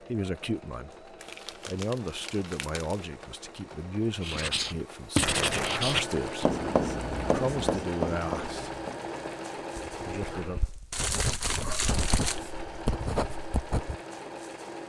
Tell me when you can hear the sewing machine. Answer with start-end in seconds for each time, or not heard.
0.0-14.8.